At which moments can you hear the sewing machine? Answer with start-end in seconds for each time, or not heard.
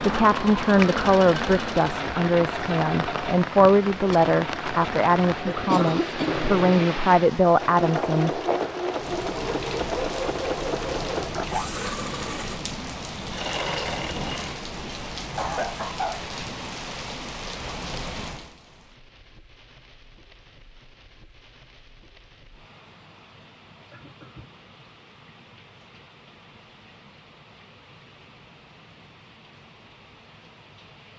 0.0-14.7.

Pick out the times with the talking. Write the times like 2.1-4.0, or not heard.
0.0-8.4.